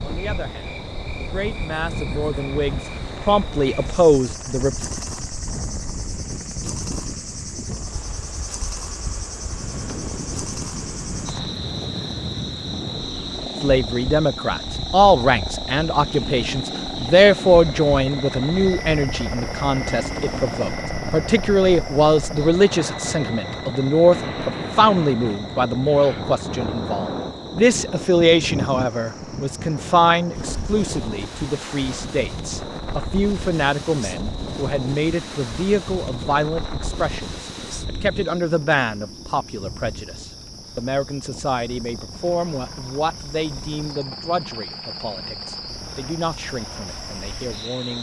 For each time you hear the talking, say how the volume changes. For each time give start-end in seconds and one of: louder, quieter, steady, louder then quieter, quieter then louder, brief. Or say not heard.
0.0-4.8 louder
13.6-47.9 quieter.